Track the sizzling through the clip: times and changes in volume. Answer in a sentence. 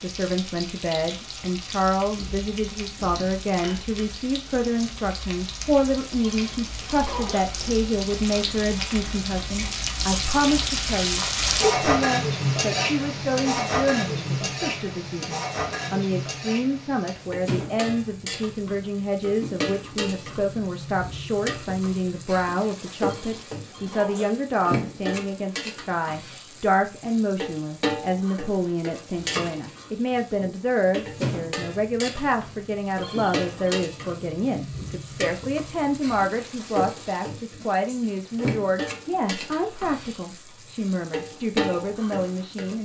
You can hear the sizzling from 0.0 to 42.8 s, getting louder then quieter.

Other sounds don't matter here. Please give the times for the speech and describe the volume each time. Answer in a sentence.
You can hear the speech from 0.0 to 42.8 s, at a steady volume.